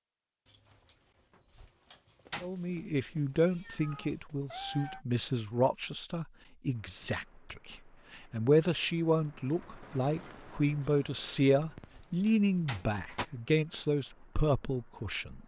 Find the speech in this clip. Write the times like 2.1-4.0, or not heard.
2.4-15.4.